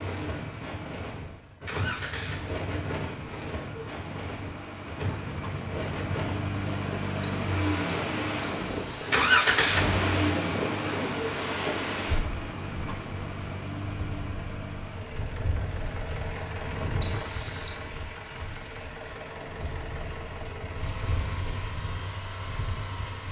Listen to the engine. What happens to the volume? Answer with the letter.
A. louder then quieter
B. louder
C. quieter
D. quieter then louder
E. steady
A.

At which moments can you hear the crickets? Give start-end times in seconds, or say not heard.
not heard.